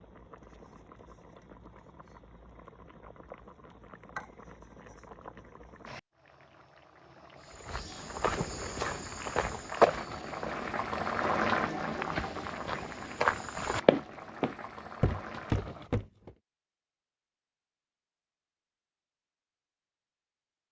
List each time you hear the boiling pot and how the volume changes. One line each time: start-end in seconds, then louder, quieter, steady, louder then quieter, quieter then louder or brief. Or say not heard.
0.0-15.9 louder then quieter.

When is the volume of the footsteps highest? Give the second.
10 s.